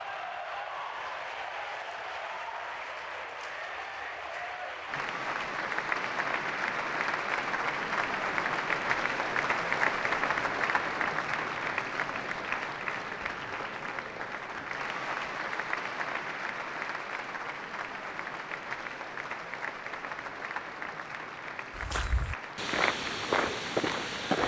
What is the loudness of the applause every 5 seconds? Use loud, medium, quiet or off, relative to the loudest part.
medium, loud, loud, medium, medium.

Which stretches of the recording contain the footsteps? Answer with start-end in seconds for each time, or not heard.
21.8-24.4.